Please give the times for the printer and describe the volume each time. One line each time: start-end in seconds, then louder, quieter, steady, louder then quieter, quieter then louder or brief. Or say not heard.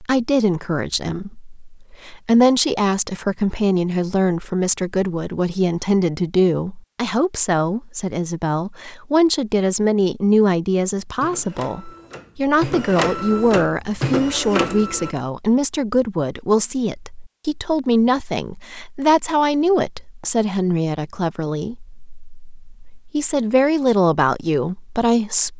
11.2-15.2 louder.